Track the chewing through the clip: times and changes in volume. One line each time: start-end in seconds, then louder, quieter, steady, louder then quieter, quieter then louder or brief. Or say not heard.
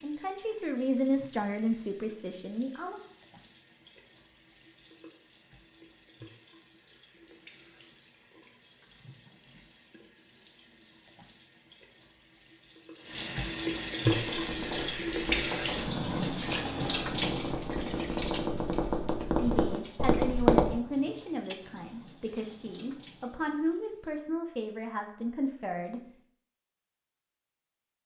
not heard.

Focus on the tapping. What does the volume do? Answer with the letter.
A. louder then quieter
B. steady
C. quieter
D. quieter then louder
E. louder
E.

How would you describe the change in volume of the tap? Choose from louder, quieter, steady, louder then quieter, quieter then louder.
louder then quieter.